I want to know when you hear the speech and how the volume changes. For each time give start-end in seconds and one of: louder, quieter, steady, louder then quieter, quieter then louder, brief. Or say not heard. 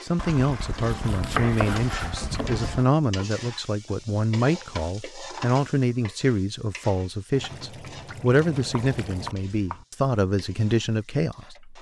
0.0-11.7 steady.